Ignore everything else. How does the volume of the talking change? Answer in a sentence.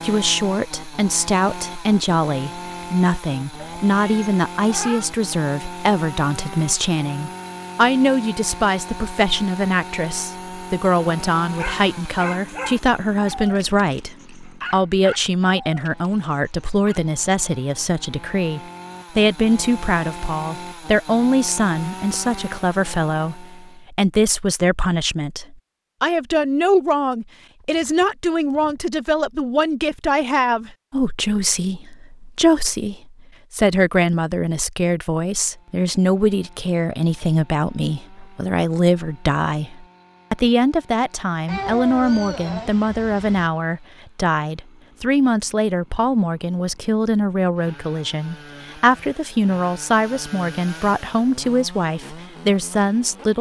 The loudness of the talking stays about the same.